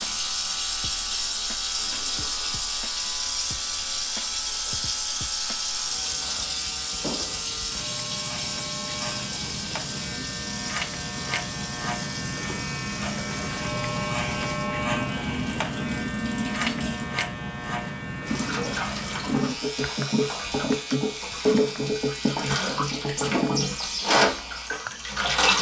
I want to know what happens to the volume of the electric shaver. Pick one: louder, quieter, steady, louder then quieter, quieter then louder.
louder then quieter.